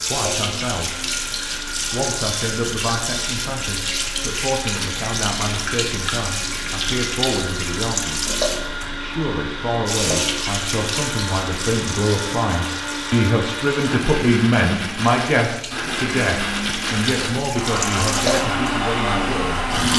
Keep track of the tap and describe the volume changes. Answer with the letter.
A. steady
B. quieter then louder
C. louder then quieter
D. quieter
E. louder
B.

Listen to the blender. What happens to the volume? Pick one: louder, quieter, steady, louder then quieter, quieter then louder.
louder.